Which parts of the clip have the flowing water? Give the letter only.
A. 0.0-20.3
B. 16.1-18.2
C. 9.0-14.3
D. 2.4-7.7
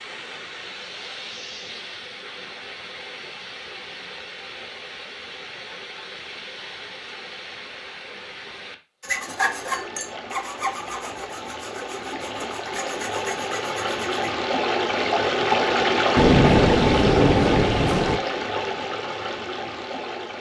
A.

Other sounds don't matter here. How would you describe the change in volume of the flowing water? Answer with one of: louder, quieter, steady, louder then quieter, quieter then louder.
louder.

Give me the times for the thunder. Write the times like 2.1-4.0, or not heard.
16.1-18.2.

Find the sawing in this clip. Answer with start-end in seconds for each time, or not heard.
9.0-14.3.